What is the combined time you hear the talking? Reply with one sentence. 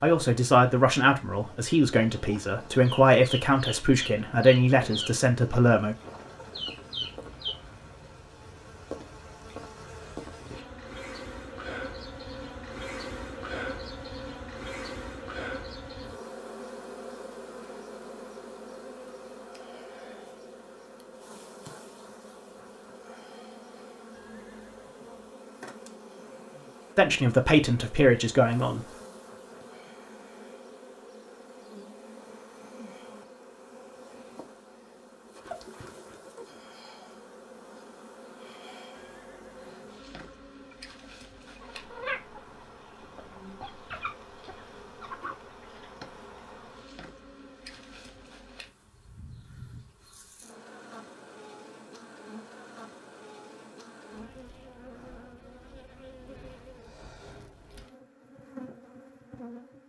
The talking can be heard for 8 seconds in total.